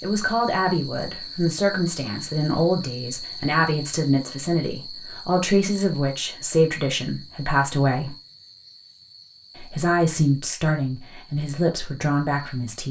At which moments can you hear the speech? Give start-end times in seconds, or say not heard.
0.0-8.2, 9.6-12.8.